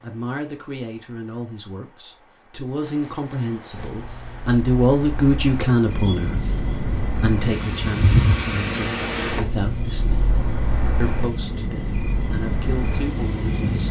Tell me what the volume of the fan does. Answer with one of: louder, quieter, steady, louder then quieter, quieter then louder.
louder then quieter.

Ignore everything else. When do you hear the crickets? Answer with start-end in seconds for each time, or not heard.
0.0-13.8.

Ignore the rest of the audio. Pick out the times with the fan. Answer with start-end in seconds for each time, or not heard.
3.7-13.8.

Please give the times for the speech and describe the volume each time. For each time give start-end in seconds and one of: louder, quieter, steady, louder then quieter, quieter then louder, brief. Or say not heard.
0.0-10.3 louder then quieter
11.0-13.8 brief.